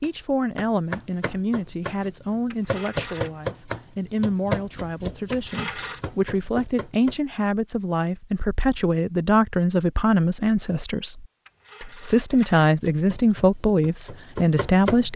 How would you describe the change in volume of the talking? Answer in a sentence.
The volume of the talking goes up.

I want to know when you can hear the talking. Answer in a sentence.
The talking can be heard from 0.0 to 15.1 s.